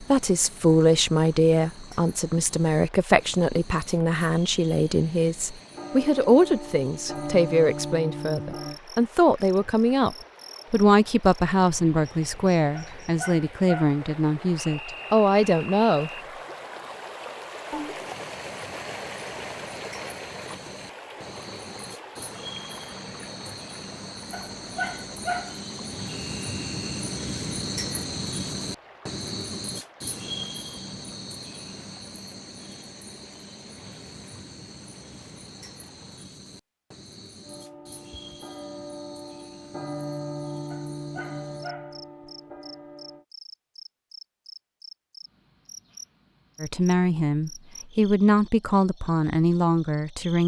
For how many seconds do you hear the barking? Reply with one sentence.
The barking can be heard for 4 seconds in total.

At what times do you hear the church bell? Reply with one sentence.
The church bell can be heard from 5.7 to 8.8 s and from 37.4 to 43.2 s.